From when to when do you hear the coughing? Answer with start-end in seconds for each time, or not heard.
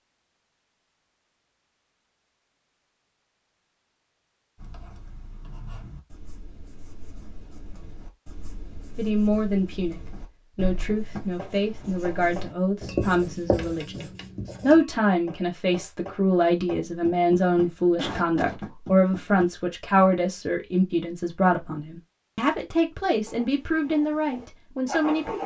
17.6-18.6.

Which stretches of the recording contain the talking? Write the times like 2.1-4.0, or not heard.
8.9-25.4.